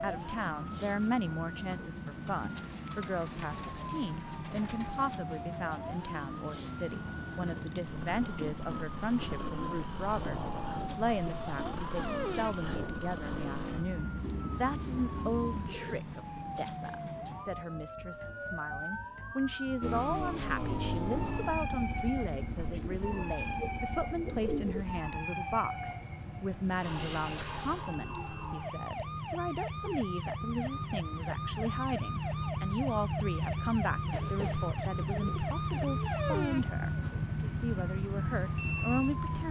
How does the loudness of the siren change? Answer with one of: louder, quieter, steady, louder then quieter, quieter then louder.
steady.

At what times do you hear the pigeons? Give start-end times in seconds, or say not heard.
2.2-5.1, 14.2-16.1, 22.6-24.9, 34.1-36.0.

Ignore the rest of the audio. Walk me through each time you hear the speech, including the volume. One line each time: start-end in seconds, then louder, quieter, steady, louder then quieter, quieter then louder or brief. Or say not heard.
0.0-39.4 steady.